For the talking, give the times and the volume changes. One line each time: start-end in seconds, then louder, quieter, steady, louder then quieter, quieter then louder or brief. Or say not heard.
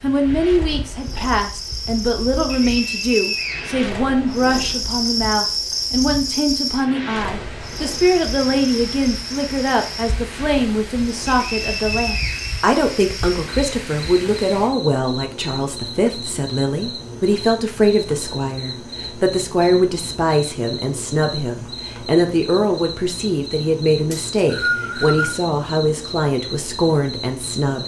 0.0-27.8 steady.